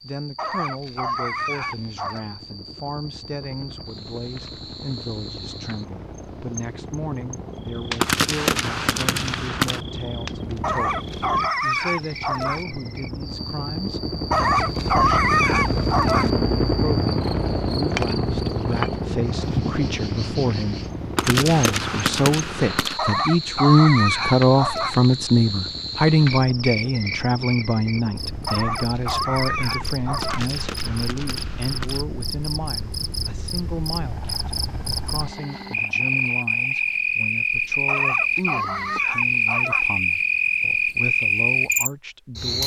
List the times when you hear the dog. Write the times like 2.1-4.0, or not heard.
0.3-2.2, 10.6-12.7, 14.3-16.3, 22.9-25.0, 28.4-30.4, 37.9-39.9.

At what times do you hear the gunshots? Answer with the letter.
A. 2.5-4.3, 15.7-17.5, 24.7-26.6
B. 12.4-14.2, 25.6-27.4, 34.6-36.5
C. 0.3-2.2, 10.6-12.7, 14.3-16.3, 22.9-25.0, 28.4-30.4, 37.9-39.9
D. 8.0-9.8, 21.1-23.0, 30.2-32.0
D.